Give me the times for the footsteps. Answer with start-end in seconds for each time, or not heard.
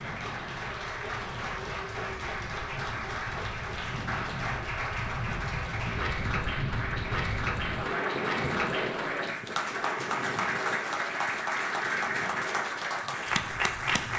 not heard.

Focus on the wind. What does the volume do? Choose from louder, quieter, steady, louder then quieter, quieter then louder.
louder then quieter.